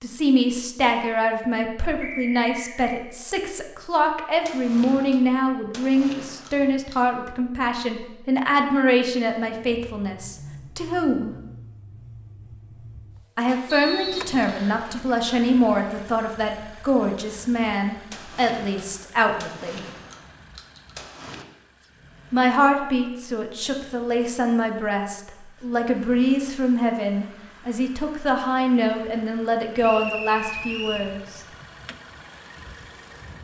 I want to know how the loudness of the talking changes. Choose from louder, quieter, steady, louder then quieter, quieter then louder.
steady.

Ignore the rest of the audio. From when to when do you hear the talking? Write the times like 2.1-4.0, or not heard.
0.0-11.3, 13.3-19.8, 22.3-31.4.